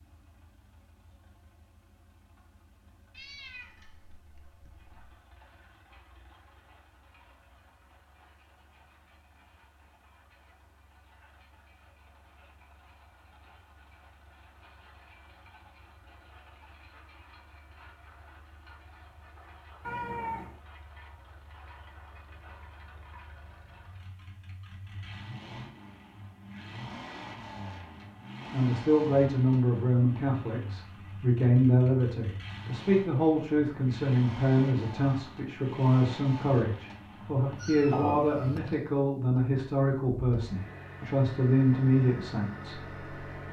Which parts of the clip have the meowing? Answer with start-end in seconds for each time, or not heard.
3.1-5.1, 19.8-20.6, 37.5-38.6.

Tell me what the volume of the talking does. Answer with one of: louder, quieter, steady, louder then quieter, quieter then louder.
steady.